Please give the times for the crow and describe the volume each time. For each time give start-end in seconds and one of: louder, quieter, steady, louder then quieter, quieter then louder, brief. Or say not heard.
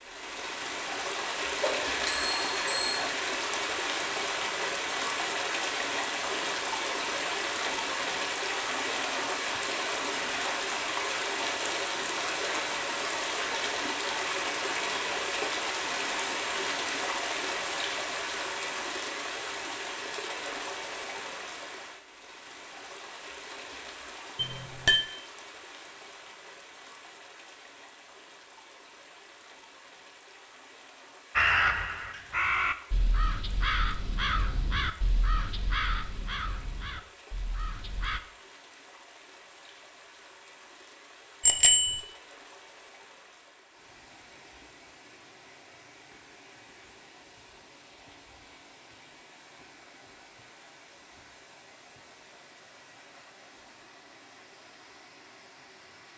31.4-38.2 quieter.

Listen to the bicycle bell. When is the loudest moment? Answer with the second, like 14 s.
42 s.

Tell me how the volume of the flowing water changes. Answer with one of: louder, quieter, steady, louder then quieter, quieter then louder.
quieter.